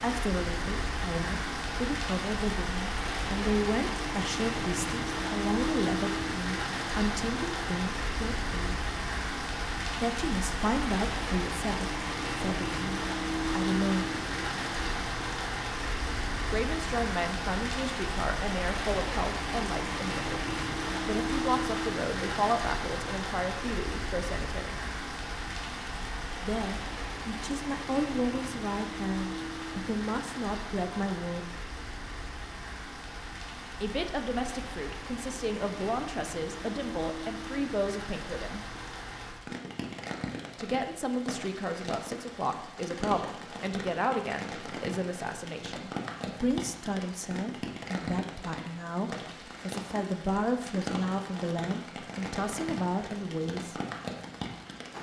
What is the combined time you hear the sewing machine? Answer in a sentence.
You can't hear the sewing machine here.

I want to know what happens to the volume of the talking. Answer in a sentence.
The volume of the talking stays about the same.